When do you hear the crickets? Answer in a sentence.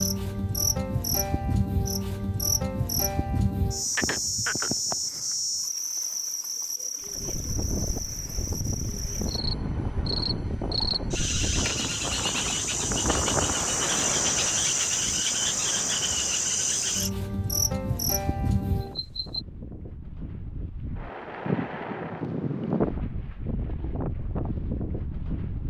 The crickets can be heard from 0.0 to 19.4 s.